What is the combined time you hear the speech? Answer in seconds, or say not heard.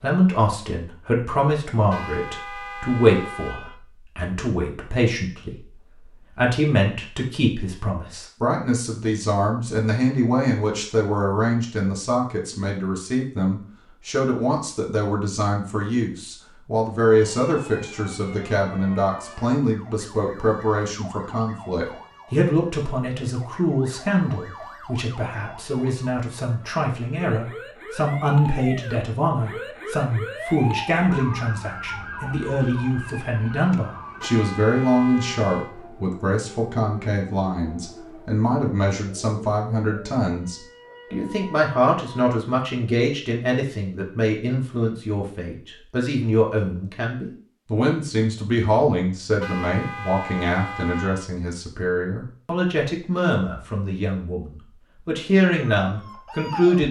57 s.